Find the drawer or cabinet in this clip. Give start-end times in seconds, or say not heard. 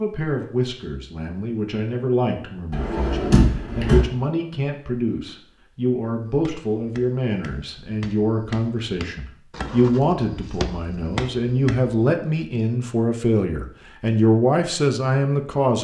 2.7-4.0.